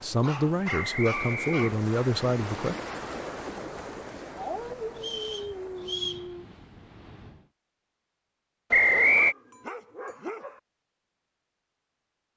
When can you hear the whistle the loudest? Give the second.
9 s.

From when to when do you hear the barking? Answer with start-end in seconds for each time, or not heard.
0.2-1.8, 4.3-6.5, 8.9-10.6.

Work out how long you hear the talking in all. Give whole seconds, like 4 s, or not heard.
3 s.